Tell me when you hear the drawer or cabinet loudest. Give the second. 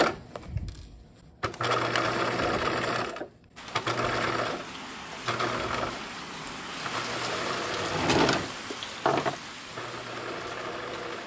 8 s.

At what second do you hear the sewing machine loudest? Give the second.
2 s.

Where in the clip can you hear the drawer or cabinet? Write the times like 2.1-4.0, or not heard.
1.5-2.6, 7.8-9.3.